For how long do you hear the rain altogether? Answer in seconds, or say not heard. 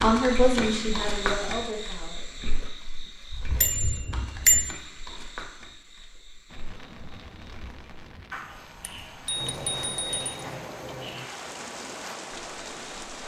7 s.